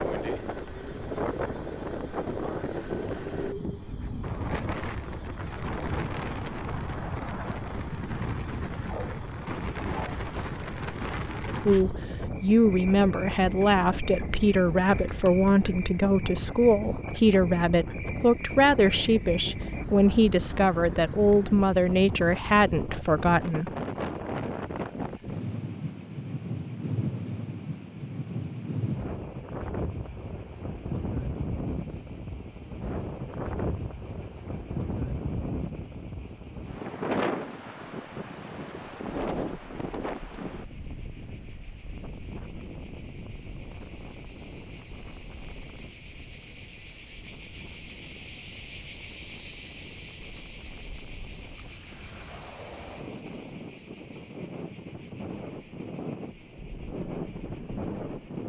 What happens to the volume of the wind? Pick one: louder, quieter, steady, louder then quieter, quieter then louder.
quieter.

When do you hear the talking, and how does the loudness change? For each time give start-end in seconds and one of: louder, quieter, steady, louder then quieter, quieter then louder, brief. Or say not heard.
11.7-23.7 steady.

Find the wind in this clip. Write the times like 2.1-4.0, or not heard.
0.0-58.4.